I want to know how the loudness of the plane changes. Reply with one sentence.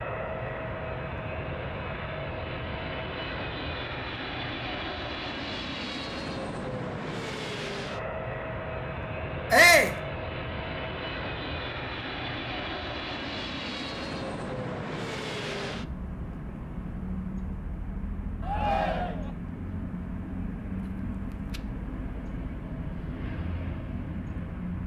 The volume of the plane stays about the same.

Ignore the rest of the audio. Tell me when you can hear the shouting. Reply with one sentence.
You can hear the shouting from 9.5 to 9.9 s and from 18.4 to 19.3 s.